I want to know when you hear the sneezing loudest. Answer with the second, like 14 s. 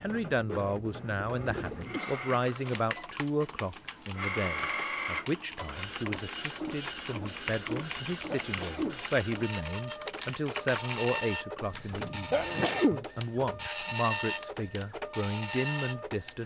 13 s.